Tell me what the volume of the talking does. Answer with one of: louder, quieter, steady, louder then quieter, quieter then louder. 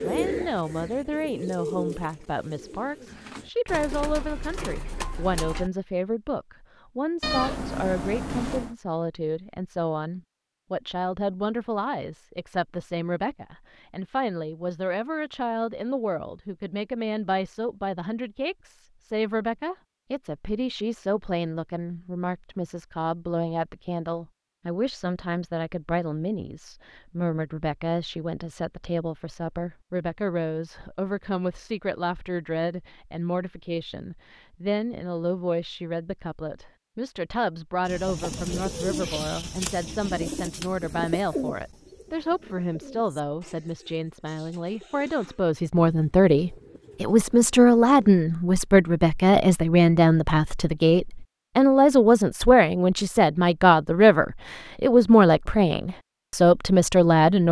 louder.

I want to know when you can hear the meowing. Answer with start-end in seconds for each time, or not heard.
7.2-8.8.